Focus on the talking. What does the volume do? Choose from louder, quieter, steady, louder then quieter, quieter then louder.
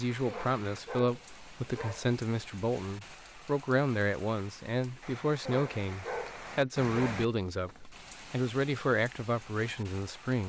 steady.